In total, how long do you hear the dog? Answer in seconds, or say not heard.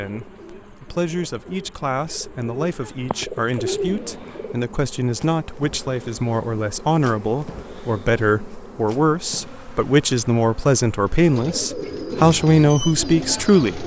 not heard.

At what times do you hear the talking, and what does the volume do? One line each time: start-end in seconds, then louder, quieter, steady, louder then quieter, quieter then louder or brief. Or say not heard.
0.0-13.8 louder.